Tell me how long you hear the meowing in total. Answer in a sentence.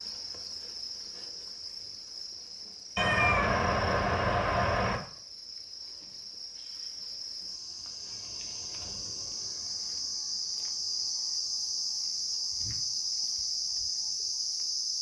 The meowing can be heard for 2 seconds in total.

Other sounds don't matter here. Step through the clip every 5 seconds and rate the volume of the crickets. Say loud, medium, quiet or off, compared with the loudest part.
medium, medium, loud.